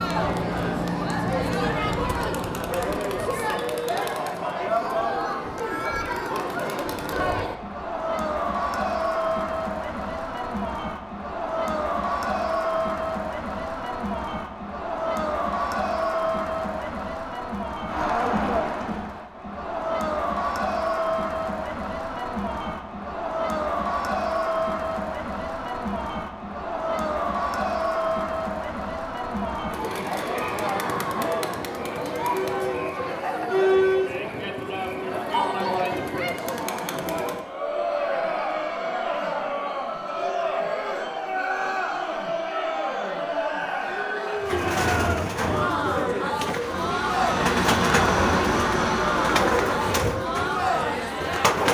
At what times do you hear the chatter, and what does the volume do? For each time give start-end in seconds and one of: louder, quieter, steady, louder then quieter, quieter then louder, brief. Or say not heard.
0.0-51.6 steady.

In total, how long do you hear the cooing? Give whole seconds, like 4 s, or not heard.
7 s.